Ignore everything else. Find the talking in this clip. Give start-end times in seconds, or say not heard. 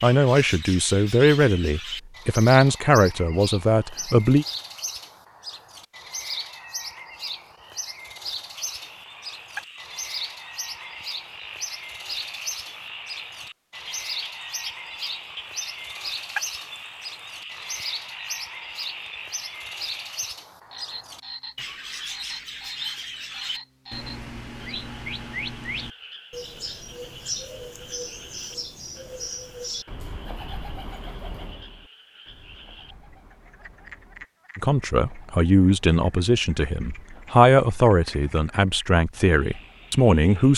0.0-4.5, 34.5-40.5.